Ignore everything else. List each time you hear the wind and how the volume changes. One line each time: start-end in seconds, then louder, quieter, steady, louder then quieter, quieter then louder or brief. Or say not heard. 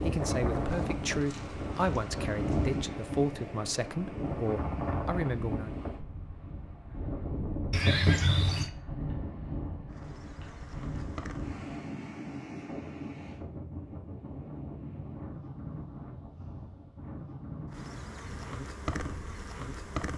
0.0-20.1 quieter.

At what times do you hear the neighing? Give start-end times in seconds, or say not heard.
7.7-8.7.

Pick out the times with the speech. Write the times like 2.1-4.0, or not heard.
0.0-5.7.